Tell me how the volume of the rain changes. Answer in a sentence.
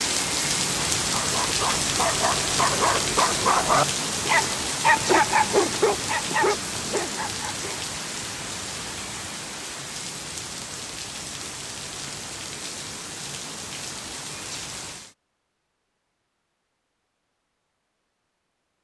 The loudness of the rain goes down.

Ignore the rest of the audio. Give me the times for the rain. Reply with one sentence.
The rain can be heard from 0.0 to 15.2 s.